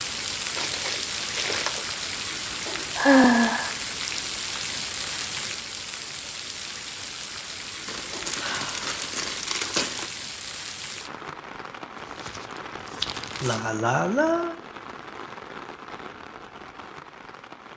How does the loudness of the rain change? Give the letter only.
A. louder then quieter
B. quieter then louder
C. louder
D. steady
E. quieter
E.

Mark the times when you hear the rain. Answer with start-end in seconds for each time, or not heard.
0.0-17.7.